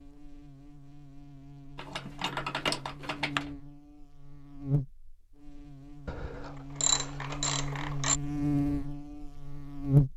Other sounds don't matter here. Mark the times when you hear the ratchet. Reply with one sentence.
The ratchet can be heard from 1.8 to 3.5 s and from 6.0 to 8.2 s.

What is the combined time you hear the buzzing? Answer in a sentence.
The buzzing can be heard for 10 seconds in total.